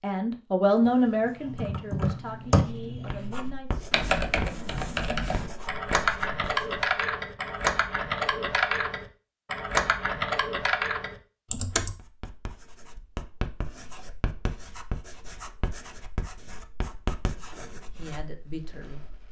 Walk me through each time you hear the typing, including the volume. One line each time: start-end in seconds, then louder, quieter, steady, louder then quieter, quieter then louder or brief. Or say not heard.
0.8-11.9 steady.